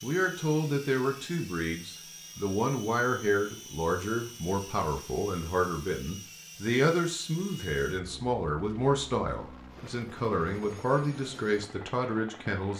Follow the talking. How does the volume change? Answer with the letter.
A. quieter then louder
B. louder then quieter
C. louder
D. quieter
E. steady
E.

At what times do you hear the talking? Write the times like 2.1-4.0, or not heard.
0.0-12.7.